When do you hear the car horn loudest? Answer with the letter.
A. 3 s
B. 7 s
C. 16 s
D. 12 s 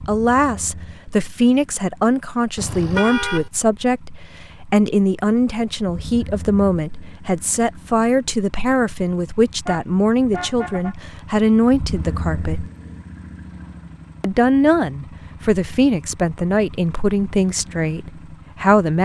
A.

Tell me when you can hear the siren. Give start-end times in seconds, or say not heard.
not heard.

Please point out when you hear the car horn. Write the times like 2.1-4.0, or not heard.
2.5-3.5, 9.7-10.9.